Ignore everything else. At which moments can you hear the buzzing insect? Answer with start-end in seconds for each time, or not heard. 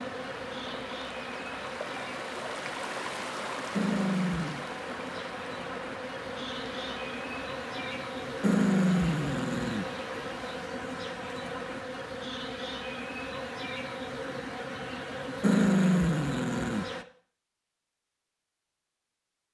0.0-17.1.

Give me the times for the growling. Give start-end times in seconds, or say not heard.
3.8-4.7, 8.4-9.8, 15.4-16.9.